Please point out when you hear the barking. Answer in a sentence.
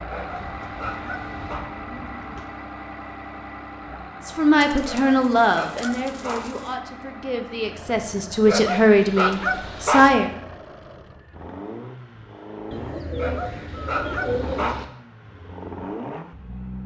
The barking can be heard from 0.1 to 1.6 s, from 4.8 to 6.5 s, from 8.4 to 10.2 s and from 13.2 to 14.8 s.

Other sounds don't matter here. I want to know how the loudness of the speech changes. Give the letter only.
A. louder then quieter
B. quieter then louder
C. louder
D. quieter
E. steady
B.